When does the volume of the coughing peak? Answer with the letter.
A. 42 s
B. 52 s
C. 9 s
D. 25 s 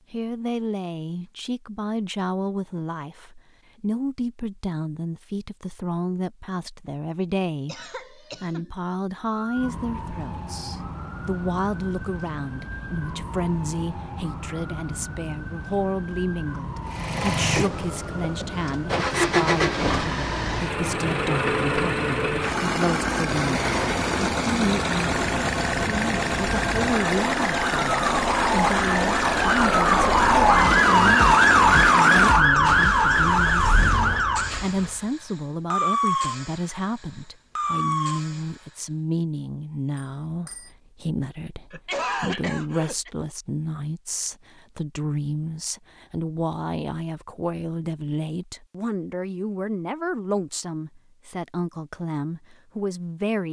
A.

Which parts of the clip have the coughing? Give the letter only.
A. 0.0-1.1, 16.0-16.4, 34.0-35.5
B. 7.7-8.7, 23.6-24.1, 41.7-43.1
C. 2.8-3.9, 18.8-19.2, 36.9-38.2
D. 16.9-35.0
B.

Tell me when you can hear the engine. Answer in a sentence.
You can hear the engine from 16.9 to 35.0 s.